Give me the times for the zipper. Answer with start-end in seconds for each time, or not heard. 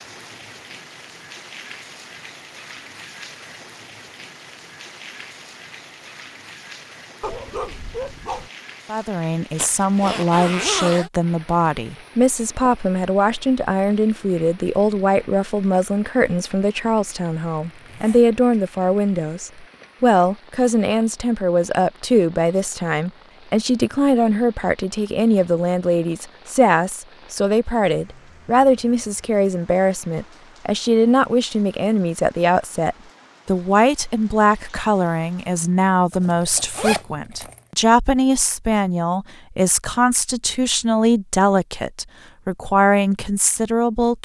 9.6-11.1, 17.6-18.2, 36.1-37.6.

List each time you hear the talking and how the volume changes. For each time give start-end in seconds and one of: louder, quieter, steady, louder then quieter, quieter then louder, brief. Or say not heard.
8.9-44.2 steady.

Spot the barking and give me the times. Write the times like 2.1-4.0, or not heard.
7.2-8.5.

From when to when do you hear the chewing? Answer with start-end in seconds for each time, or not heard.
not heard.